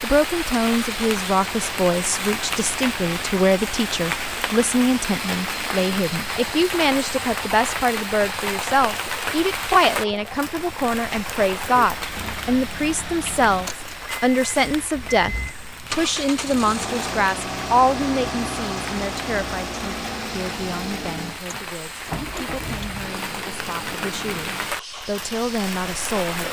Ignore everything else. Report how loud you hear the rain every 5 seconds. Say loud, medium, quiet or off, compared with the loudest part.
loud, loud, medium, medium, medium, loud.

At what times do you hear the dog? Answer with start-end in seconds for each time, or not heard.
not heard.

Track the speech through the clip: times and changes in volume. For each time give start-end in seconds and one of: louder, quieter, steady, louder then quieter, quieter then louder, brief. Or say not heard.
0.0-26.4 quieter.